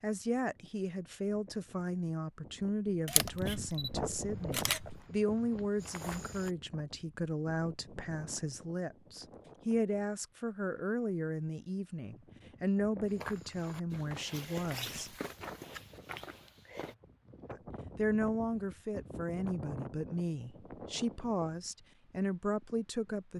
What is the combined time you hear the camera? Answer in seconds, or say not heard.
2 s.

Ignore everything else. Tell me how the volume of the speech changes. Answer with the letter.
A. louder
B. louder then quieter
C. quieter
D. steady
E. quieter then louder
D.